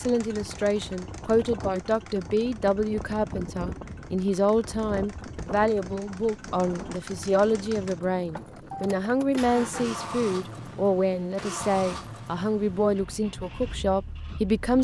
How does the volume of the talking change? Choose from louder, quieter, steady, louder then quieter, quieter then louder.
steady.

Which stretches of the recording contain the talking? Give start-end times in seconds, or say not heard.
0.0-14.7.